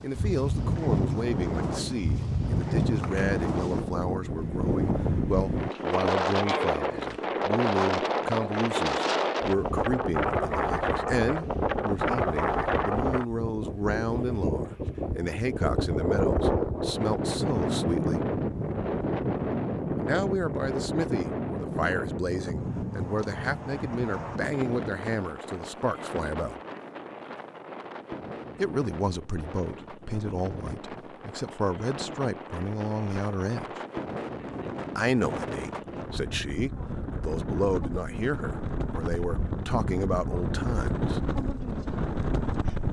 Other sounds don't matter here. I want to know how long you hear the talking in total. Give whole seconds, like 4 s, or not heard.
36 s.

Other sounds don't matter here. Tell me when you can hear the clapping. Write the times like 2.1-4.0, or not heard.
not heard.